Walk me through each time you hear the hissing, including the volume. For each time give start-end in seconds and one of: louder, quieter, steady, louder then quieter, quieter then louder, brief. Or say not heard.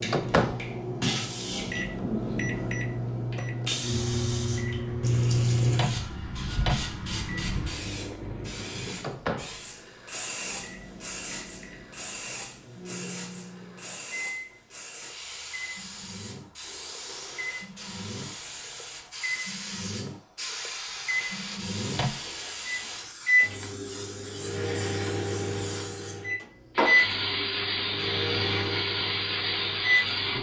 0.0-30.3 quieter then louder.